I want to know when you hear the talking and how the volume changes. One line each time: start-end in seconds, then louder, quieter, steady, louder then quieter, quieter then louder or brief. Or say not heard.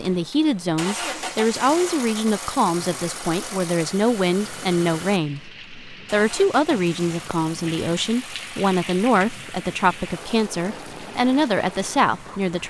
0.0-12.6 steady.